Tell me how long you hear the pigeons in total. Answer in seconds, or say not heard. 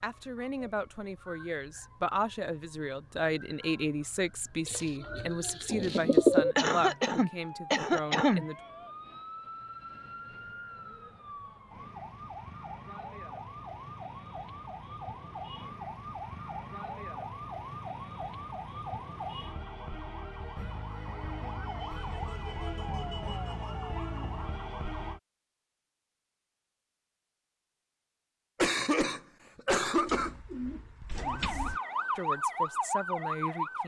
4 s.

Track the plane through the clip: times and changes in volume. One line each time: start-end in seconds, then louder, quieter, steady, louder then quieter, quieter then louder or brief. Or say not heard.
not heard.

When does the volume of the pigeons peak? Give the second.
6 s.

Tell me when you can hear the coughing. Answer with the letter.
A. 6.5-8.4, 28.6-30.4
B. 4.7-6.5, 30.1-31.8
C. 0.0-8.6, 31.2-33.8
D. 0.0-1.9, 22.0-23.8
A.